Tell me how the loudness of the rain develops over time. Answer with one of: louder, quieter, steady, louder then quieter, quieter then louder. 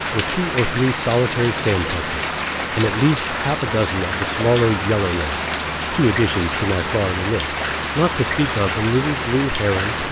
steady.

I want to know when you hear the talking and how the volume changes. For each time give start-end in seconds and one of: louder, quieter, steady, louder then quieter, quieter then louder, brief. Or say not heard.
0.1-10.0 steady.